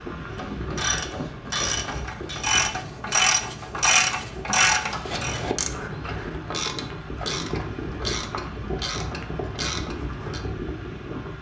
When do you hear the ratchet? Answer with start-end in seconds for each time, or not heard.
0.3-10.4.